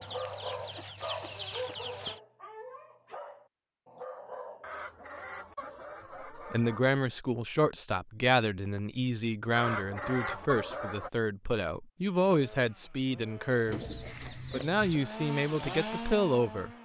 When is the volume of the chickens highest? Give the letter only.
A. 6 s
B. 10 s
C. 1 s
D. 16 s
B.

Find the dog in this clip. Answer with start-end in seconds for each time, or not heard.
0.0-4.7.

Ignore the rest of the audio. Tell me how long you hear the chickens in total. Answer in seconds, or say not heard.
7 s.